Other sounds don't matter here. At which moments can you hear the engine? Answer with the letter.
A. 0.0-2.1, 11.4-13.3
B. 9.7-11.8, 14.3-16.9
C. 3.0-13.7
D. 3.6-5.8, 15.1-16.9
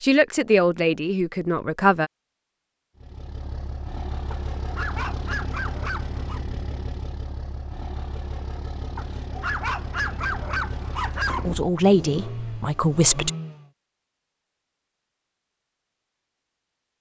C.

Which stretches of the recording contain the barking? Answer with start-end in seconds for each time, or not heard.
4.3-6.4, 8.9-11.6.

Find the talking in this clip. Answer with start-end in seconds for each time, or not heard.
0.0-2.1, 11.4-13.3.